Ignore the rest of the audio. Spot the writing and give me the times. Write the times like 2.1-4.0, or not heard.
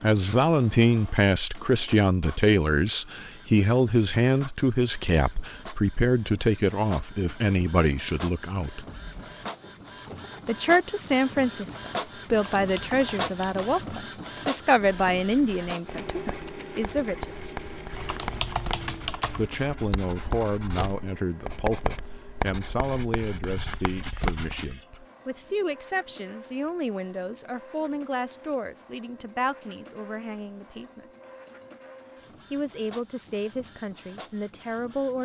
14.8-24.8.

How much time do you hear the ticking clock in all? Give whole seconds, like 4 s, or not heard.
not heard.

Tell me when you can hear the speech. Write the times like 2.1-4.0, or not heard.
0.0-8.8, 10.4-17.6, 19.4-31.1, 32.5-35.2.